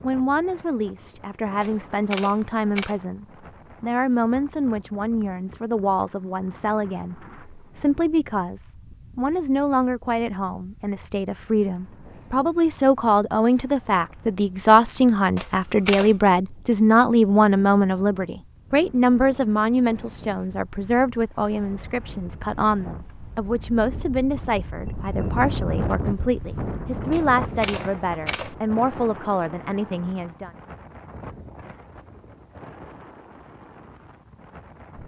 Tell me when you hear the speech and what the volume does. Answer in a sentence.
You can hear the speech from 0.0 to 30.5 s, getting louder then quieter.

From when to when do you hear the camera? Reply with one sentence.
The camera can be heard from 1.6 to 3.0 s, from 15.3 to 16.1 s and from 27.1 to 28.6 s.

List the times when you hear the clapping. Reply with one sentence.
The clapping can't be heard in this clip.